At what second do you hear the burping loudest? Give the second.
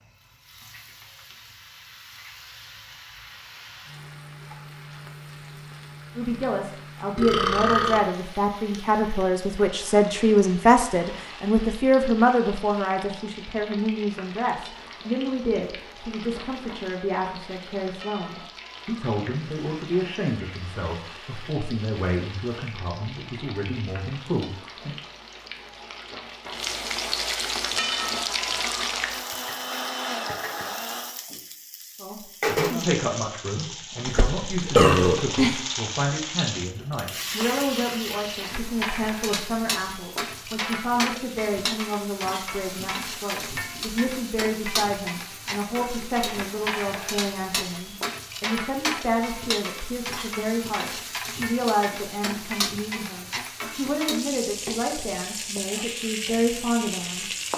35 s.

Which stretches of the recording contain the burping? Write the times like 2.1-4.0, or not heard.
7.2-8.0, 34.0-35.6.